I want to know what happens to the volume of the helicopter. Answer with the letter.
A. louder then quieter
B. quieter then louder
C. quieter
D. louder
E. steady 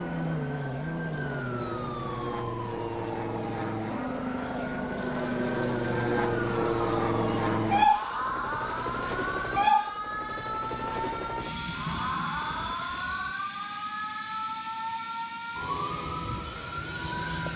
A.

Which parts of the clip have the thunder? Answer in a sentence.
The thunder can be heard from 11.3 to 13.3 s.